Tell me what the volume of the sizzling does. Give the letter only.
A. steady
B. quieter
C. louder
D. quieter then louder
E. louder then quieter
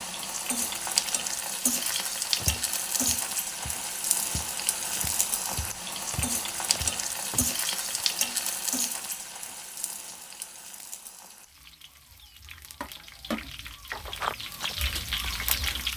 D.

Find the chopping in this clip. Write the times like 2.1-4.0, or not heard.
not heard.